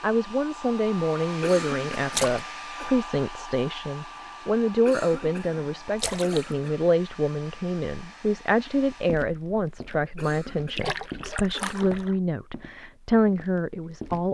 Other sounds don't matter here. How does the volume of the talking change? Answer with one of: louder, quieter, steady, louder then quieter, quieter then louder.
steady.